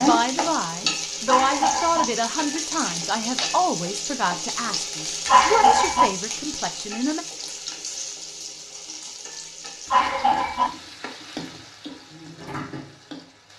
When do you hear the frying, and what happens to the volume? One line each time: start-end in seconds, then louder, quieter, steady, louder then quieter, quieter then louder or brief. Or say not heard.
0.0-13.5 quieter.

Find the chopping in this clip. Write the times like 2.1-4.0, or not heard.
not heard.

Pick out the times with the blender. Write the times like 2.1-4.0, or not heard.
not heard.